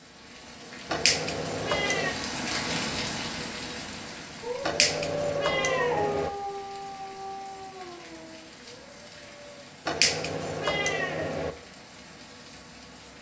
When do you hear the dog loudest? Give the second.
6 s.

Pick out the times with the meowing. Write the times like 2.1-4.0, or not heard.
0.9-2.1, 4.6-6.3, 9.8-11.6.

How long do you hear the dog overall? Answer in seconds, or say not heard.
5 s.